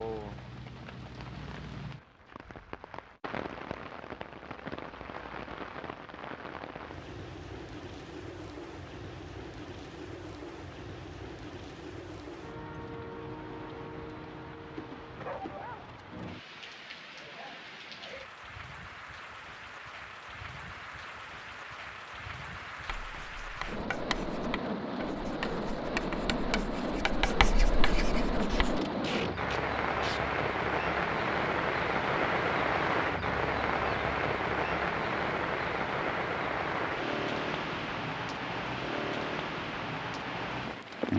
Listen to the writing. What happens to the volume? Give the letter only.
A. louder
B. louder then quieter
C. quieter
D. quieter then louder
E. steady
D.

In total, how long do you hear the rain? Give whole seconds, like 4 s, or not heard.
41 s.